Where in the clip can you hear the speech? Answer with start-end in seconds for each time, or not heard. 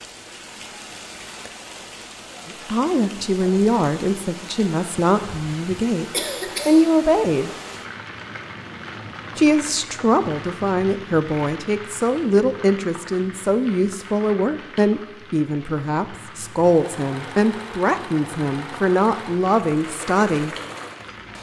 2.6-6.0, 6.7-7.5, 9.3-20.6.